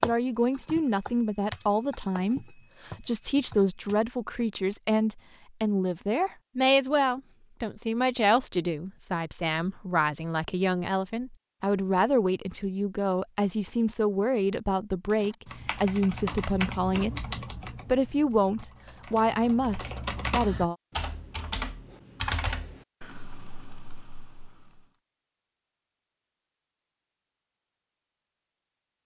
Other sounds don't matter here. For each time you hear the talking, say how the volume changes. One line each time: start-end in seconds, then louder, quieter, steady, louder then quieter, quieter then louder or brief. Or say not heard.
0.0-17.2 steady
17.9-20.8 brief.